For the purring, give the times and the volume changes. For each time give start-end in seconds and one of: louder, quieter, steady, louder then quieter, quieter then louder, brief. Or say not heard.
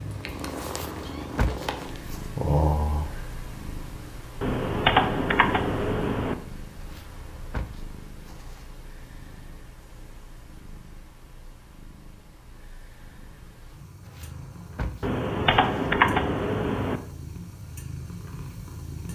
0.0-19.1 quieter then louder.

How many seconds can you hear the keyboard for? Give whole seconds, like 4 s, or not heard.
4 s.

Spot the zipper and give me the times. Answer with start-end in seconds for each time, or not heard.
0.6-2.2, 6.8-8.7, 14.0-15.9.